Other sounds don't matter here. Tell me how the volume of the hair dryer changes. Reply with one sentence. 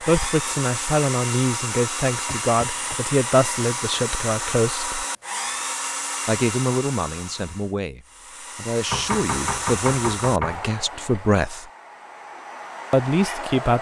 The loudness of the hair dryer goes down.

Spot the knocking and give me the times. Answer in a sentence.
You can hear the knocking from 2.2 to 3.0 s and from 8.9 to 10.6 s.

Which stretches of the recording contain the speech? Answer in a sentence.
The speech can be heard from 0.1 to 5.0 s, from 6.2 to 11.7 s and from 12.9 to 13.7 s.